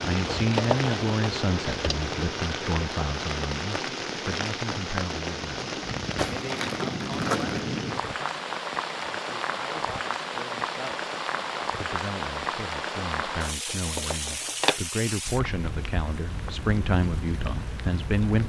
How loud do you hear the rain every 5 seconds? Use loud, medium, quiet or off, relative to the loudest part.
loud, loud, loud, medium.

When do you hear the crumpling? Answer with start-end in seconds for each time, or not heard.
0.2-1.1, 6.2-7.7, 13.7-14.8.